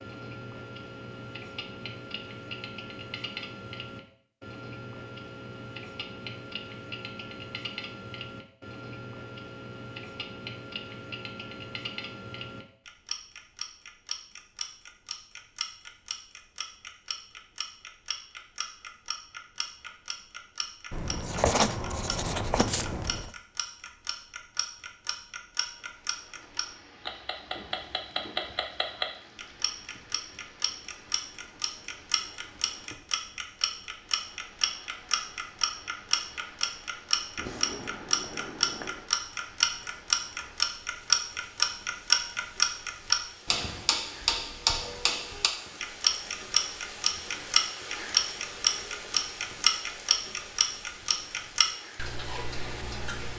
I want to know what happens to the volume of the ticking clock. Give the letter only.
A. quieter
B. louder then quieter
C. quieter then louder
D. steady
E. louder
E.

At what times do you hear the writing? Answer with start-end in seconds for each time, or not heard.
20.9-23.3, 37.4-39.1.